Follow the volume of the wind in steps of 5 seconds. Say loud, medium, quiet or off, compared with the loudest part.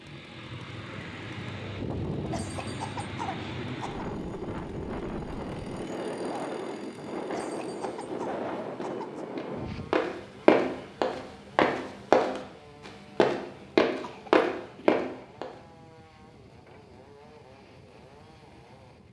loud, loud, quiet, quiet.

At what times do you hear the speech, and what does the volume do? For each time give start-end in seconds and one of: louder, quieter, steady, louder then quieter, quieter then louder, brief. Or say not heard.
not heard.